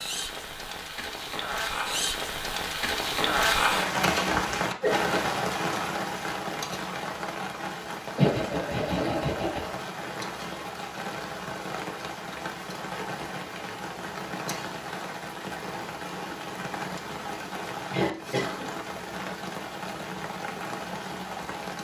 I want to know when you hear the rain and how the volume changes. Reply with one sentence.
The rain can be heard from 0.0 to 21.8 s, getting quieter.